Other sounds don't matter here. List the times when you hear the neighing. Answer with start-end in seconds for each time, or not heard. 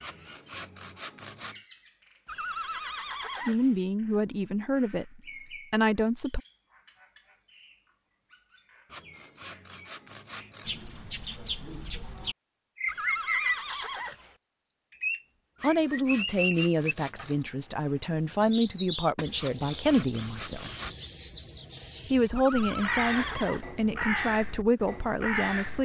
2.2-3.8, 12.8-14.3, 22.4-23.6.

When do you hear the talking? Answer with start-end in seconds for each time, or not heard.
3.5-6.4, 15.6-20.8, 22.1-25.7.